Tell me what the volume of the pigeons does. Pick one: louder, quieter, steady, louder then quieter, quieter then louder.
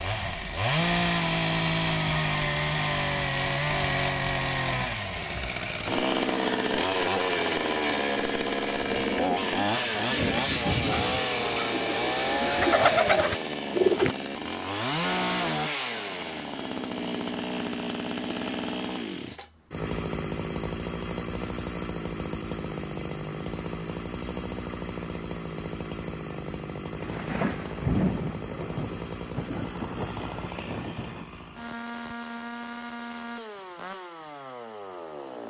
louder.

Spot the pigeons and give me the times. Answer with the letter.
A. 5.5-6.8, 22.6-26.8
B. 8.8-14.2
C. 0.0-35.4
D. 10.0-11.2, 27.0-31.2
B.